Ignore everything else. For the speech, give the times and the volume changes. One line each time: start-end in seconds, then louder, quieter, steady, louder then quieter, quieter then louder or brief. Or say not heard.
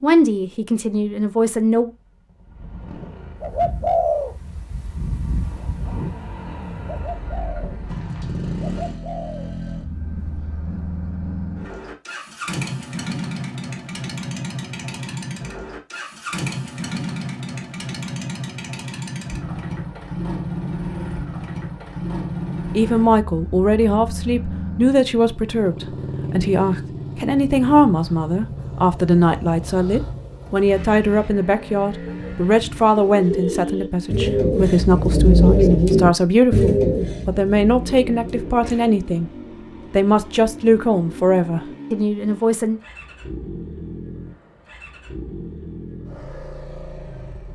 0.0-1.9 brief
22.8-39.3 steady
39.9-42.8 brief.